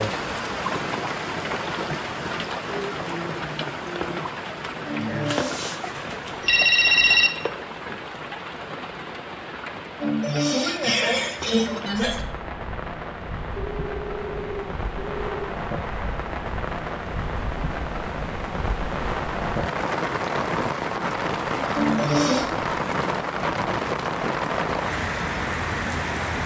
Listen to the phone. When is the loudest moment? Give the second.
7 s.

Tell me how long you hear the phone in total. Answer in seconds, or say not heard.
4 s.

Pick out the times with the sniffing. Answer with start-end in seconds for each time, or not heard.
4.8-5.7, 10.0-12.2, 21.8-22.5.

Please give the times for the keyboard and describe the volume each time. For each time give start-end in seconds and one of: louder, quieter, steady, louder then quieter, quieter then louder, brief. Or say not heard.
not heard.